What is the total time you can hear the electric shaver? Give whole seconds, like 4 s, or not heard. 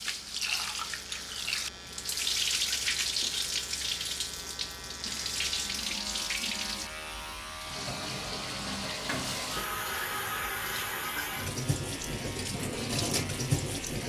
14 s.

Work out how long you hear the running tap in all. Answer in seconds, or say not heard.
14 s.